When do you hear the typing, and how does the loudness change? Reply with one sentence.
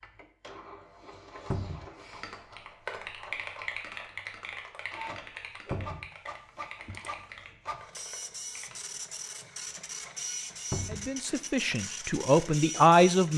The typing can be heard from 2.1 to 8.8 s, getting quieter.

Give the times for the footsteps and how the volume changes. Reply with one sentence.
You can't hear the footsteps here.